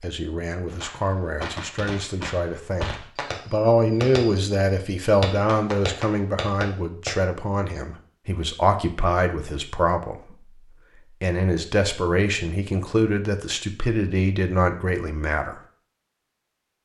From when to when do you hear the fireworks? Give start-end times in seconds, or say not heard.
0.7-7.1.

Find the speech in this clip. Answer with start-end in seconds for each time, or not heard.
0.0-10.5, 11.2-15.6.